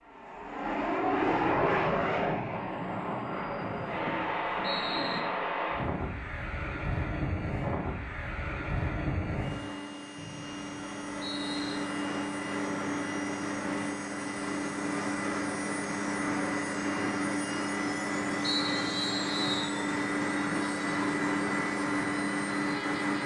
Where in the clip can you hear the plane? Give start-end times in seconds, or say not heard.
0.1-23.2.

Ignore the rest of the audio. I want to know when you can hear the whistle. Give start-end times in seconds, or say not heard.
3.6-5.2, 10.2-11.8, 18.4-19.8.